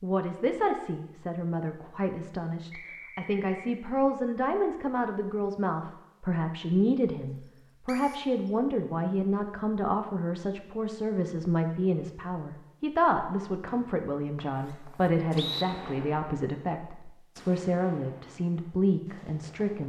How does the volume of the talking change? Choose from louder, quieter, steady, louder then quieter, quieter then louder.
steady.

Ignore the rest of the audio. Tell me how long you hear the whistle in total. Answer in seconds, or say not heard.
3 s.